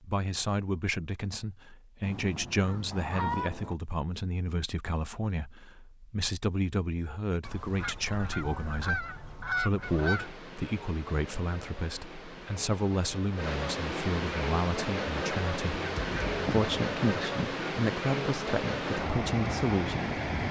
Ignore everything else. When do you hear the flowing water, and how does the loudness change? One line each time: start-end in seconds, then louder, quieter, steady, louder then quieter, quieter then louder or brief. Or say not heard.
9.8-20.4 louder.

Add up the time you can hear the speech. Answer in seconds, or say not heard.
20 s.